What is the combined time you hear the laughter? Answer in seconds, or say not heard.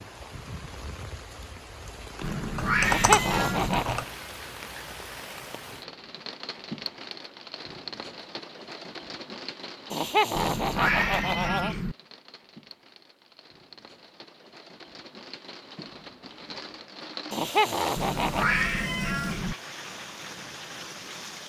4 s.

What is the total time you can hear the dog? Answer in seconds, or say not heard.
not heard.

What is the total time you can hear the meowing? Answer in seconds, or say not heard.
5 s.